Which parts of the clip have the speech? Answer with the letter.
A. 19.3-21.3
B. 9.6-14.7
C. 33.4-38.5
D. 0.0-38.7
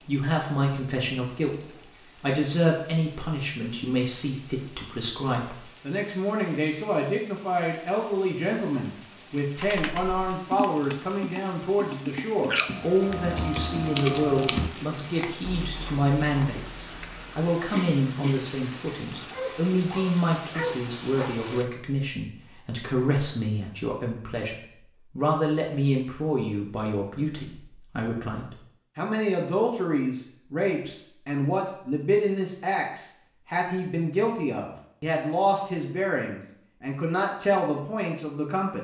D.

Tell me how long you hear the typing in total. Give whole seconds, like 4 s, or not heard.
5 s.